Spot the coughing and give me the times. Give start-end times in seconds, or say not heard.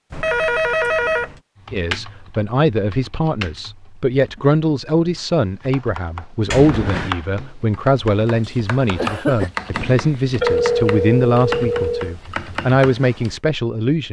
8.4-9.5.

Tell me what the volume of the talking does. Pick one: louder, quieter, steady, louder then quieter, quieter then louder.
steady.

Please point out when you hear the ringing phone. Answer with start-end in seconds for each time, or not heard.
0.1-1.4, 6.5-7.2, 9.7-12.2.